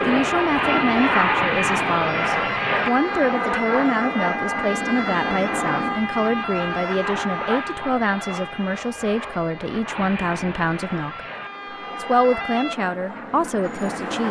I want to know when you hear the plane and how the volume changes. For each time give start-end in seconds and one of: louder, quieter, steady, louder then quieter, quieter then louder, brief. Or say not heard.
0.0-14.2 quieter.